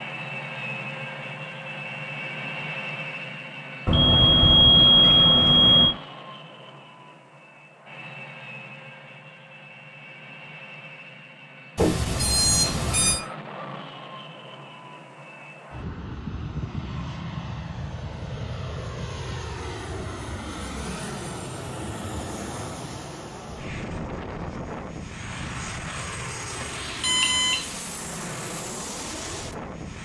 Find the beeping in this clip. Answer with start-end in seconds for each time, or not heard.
3.9-5.9, 11.8-13.2, 26.6-27.6.